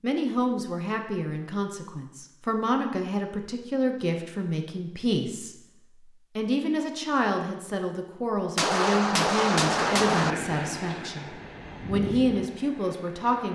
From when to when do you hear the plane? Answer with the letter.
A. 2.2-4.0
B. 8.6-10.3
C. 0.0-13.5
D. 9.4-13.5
D.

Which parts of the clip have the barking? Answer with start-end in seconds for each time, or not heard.
not heard.